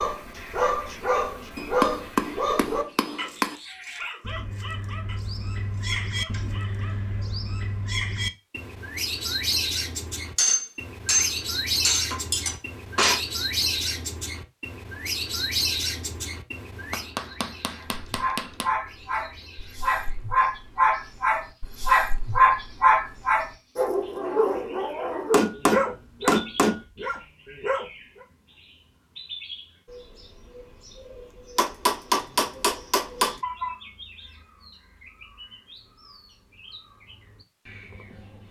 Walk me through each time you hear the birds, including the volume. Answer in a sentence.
You can hear the birds from 0.0 to 38.4 s, getting louder then quieter.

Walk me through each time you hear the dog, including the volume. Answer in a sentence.
You can hear the dog from 0.0 to 7.3 s, getting quieter; and from 17.8 to 28.2 s, getting louder then quieter.